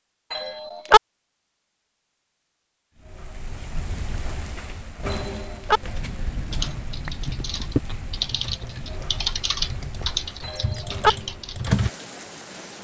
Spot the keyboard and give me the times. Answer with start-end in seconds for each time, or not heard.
6.5-11.9.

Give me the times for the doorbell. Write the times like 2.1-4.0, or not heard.
0.3-1.0, 5.1-5.8, 10.4-11.1.